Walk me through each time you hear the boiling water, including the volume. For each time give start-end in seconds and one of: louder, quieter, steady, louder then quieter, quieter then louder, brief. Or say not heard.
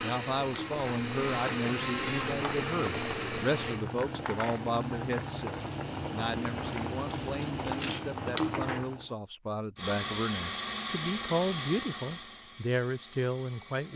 0.0-9.1 louder.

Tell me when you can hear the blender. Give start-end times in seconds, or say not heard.
0.0-3.8, 9.8-13.9.